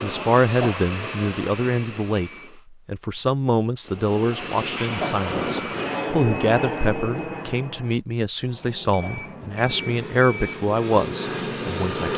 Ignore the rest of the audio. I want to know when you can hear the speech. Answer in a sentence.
You can hear the speech from 0.0 to 12.1 s.